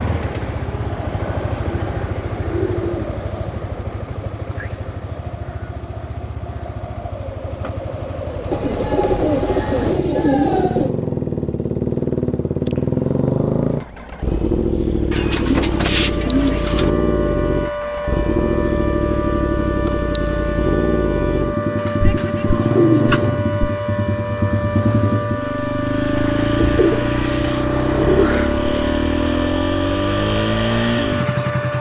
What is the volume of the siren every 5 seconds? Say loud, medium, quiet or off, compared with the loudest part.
off, off, off, loud, loud, loud, loud.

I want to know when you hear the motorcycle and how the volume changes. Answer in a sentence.
The motorcycle can be heard from 0.0 to 31.7 s, getting louder.